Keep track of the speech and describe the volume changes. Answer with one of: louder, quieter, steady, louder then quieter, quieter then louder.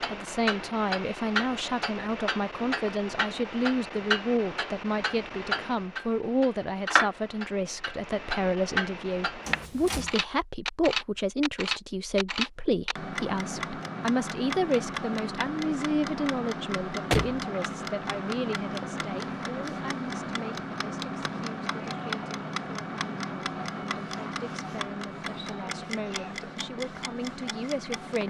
quieter.